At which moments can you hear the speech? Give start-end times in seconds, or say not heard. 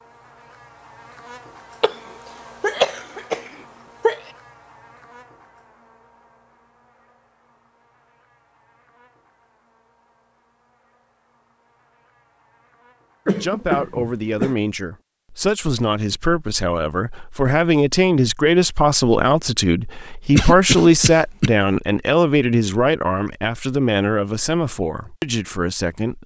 13.4-26.2.